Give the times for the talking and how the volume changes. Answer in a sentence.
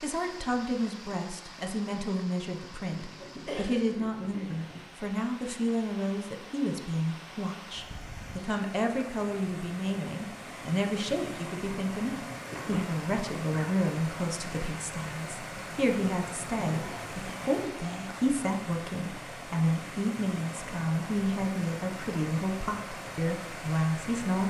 The talking can be heard from 0.0 to 24.4 s, at a steady volume.